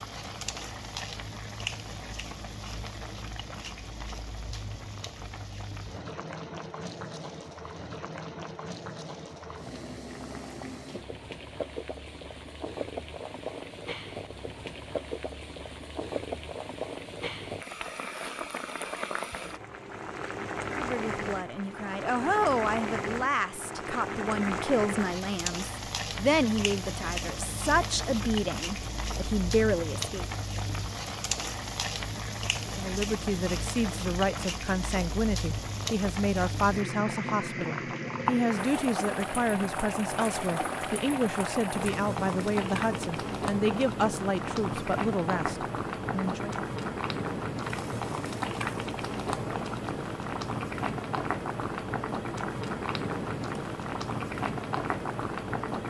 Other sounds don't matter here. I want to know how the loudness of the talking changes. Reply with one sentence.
The volume of the talking stays about the same.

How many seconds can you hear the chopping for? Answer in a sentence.
You can't hear the chopping here.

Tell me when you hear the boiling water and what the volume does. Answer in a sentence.
You can hear the boiling water from 0.0 to 55.8 s, getting louder.